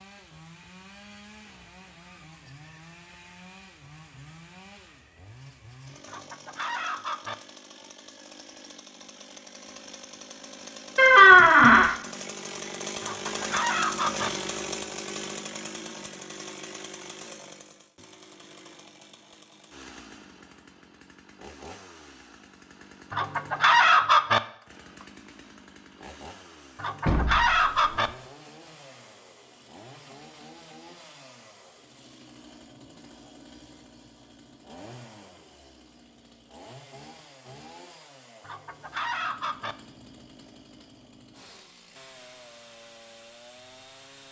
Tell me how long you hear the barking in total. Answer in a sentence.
You can't hear the barking here.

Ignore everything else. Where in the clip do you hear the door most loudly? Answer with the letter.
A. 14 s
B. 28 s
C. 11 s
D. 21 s
C.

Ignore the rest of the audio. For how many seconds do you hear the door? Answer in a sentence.
You can hear the door for 2 seconds altogether.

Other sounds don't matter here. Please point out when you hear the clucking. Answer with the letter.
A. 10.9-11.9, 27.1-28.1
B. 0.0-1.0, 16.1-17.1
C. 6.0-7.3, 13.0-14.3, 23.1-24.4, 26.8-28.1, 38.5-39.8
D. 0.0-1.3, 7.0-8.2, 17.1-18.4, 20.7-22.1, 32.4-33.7
C.